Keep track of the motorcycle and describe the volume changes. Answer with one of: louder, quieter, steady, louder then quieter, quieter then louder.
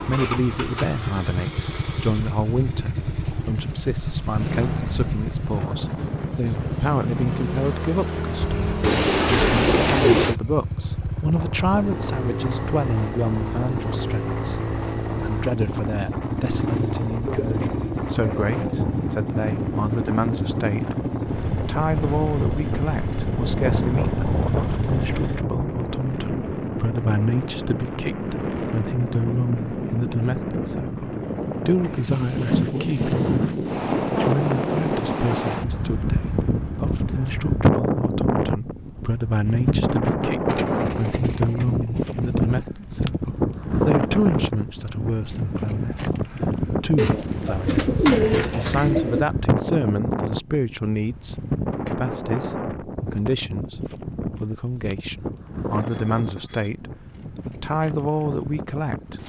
steady.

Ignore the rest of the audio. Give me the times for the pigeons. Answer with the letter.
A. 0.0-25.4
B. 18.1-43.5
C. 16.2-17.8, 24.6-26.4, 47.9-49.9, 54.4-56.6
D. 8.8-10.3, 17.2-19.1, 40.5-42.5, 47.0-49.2
D.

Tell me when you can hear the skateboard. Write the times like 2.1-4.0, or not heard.
not heard.